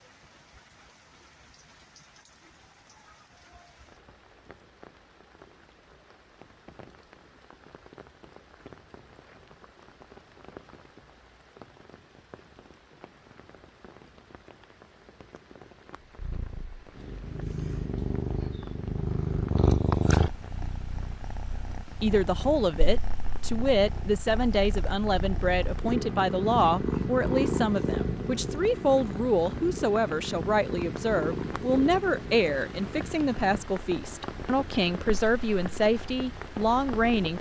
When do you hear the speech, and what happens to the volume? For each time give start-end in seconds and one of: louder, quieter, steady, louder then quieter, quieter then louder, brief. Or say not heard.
22.0-37.3 steady.